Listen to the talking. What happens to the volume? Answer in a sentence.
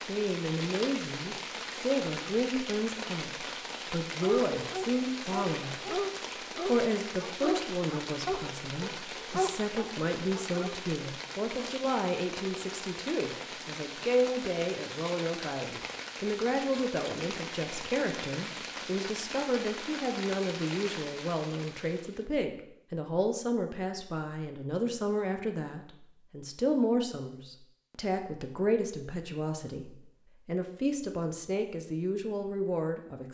The volume of the talking stays about the same.